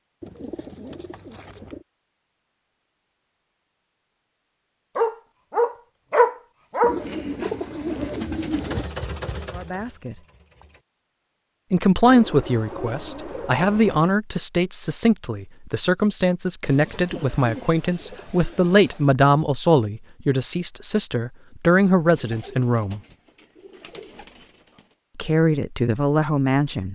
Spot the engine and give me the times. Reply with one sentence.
You can hear the engine from 8.6 to 10.8 s.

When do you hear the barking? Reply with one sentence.
The barking can be heard from 5.0 to 7.0 s.